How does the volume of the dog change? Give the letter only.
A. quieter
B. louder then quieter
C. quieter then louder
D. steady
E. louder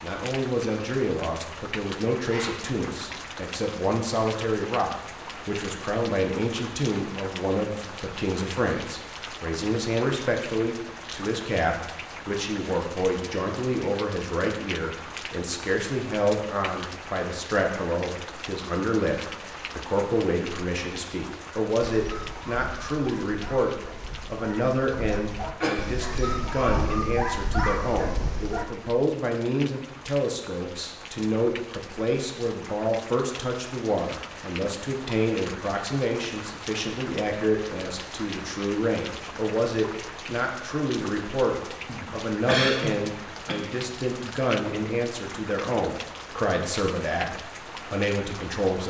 E.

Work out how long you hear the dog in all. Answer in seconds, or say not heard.
7 s.